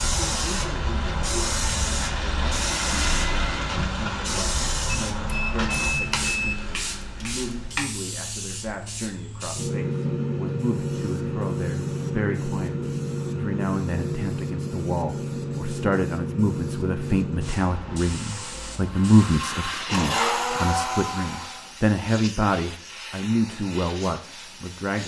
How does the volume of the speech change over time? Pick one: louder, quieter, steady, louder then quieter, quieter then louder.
louder.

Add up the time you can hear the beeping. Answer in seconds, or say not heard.
2 s.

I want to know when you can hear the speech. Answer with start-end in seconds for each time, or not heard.
0.2-25.0.